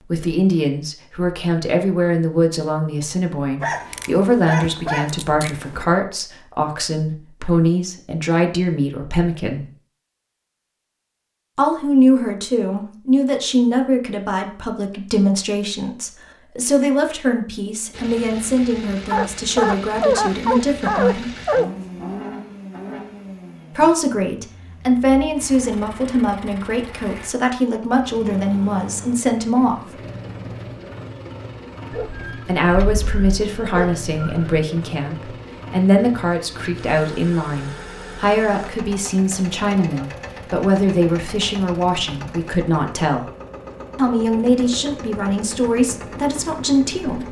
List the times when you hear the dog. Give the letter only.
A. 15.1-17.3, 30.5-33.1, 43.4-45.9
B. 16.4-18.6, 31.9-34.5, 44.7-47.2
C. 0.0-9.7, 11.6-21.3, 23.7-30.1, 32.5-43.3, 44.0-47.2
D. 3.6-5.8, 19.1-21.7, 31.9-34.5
D.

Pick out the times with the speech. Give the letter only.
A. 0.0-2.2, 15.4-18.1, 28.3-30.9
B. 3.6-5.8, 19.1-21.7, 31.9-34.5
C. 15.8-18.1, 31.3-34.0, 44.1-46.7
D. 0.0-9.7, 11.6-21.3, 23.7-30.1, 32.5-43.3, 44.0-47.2
D.